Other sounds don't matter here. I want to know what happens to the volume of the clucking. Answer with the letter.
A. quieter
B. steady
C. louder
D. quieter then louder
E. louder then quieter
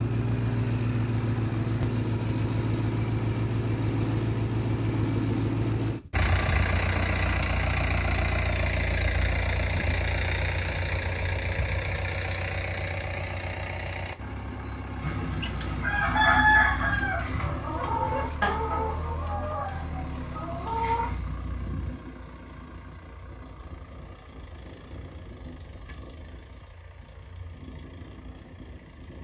A.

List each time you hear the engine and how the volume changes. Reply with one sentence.
You can hear the engine from 0.0 to 29.1 s, getting quieter.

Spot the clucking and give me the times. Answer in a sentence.
You can hear the clucking from 15.0 to 21.2 s.